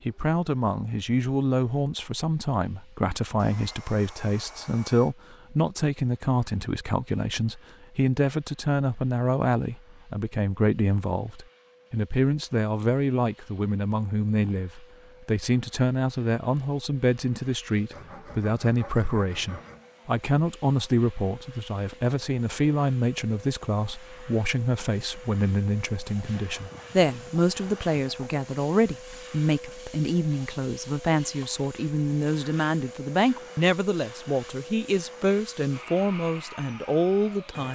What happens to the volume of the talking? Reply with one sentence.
The volume of the talking stays about the same.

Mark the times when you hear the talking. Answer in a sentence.
The talking can be heard from 0.1 to 37.7 s.